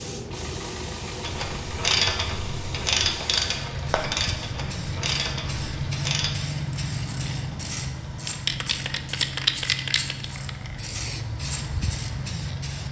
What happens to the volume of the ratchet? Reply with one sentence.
The volume of the ratchet goes down.